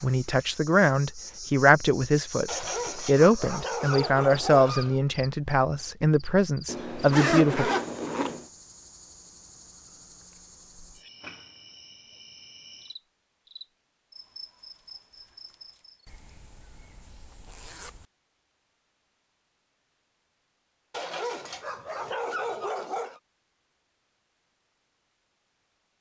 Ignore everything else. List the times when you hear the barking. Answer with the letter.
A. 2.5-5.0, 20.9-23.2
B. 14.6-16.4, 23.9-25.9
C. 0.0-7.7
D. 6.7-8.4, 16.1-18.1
A.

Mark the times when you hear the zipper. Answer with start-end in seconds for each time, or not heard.
6.7-8.4, 16.1-18.1.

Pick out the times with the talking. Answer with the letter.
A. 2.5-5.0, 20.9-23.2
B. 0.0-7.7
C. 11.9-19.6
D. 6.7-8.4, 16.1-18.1
B.